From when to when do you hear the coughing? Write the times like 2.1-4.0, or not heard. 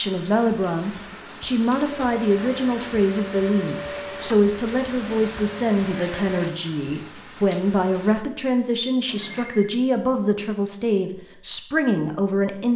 not heard.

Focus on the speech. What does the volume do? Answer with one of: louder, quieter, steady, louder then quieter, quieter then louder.
steady.